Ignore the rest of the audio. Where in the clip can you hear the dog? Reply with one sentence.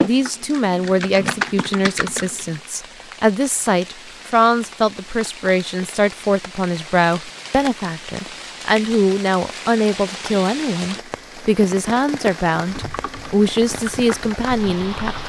The dog can't be heard in this clip.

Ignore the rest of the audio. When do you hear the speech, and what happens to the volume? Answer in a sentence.
The speech can be heard from 0.0 to 15.2 s, at a steady volume.